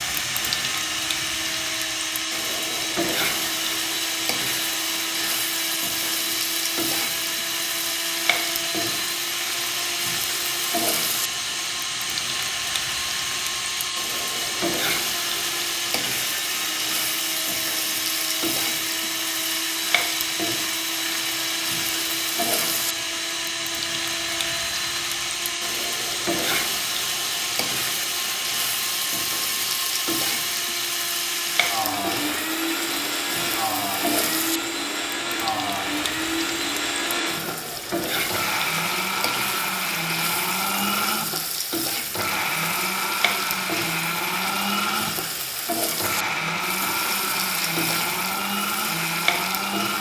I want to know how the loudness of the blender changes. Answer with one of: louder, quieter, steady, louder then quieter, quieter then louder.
steady.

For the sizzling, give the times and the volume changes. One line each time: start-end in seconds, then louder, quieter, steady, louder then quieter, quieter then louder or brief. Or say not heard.
0.0-49.9 steady.